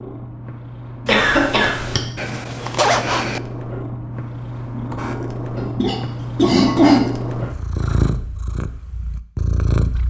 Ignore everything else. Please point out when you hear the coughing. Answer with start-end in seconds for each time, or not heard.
1.1-2.0, 5.5-7.0.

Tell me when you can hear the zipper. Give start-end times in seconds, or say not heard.
2.1-3.4.